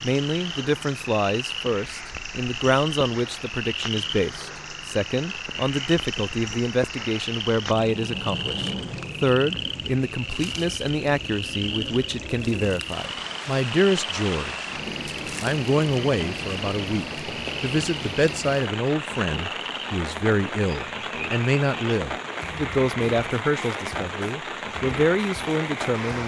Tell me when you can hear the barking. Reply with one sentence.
You can't hear the barking here.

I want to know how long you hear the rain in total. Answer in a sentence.
The rain can be heard for 26 seconds in total.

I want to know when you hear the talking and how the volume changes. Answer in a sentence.
The talking can be heard from 0.0 to 14.7 s, at a steady volume; and from 15.4 to 26.2 s, at a steady volume.